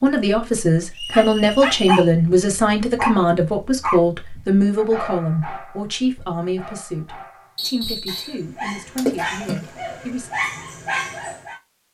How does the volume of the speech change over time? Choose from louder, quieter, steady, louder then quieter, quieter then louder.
quieter.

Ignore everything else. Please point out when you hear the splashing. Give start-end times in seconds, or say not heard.
8.9-9.7.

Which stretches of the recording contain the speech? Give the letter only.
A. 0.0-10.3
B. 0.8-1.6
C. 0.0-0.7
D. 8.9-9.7
A.